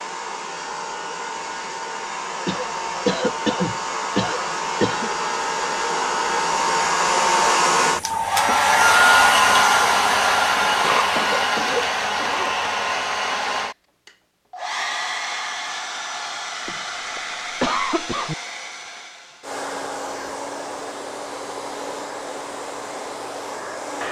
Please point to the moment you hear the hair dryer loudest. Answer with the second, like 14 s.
9 s.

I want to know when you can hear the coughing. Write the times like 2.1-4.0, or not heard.
2.5-5.1, 10.8-12.7, 16.6-18.4.